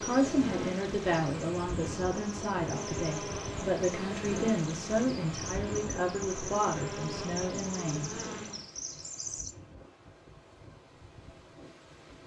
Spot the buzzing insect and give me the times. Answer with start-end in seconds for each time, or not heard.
0.0-8.8.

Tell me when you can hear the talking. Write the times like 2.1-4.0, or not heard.
0.0-8.2.